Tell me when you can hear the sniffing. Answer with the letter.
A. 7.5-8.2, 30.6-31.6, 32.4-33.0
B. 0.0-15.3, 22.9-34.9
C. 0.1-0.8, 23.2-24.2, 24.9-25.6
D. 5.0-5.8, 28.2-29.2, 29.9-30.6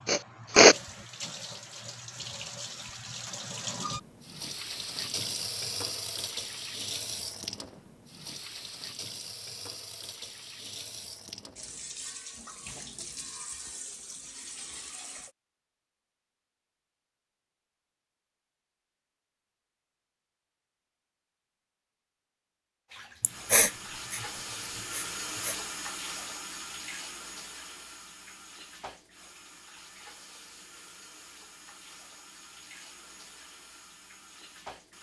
C.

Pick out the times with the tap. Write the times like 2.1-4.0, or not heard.
0.0-15.3, 22.9-34.9.